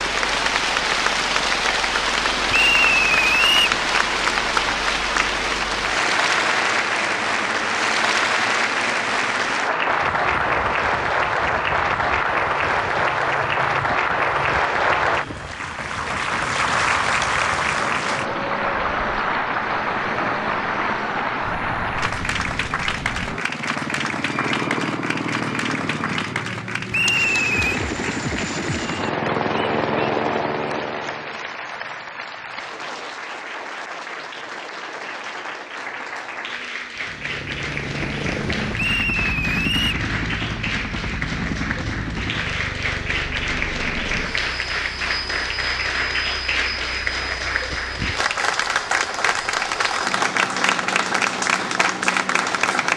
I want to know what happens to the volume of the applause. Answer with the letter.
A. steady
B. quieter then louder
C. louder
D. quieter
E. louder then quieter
B.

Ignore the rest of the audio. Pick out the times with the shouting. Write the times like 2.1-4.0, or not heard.
not heard.